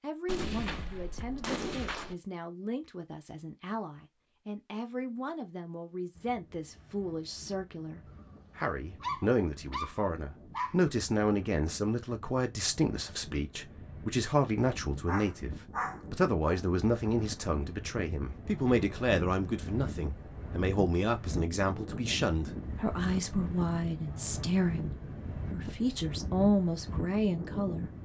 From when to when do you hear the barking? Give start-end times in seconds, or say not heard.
8.2-10.8, 15.1-17.1.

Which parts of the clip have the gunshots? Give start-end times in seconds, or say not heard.
0.2-2.1.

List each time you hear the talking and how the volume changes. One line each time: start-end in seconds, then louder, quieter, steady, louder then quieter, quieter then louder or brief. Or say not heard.
0.0-15.5 louder
16.1-24.9 steady
25.5-27.9 brief.